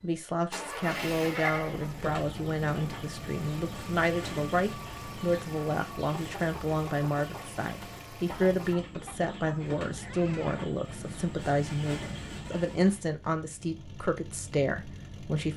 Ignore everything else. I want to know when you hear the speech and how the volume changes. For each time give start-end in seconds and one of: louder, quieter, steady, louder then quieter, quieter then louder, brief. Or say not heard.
0.0-15.5 steady.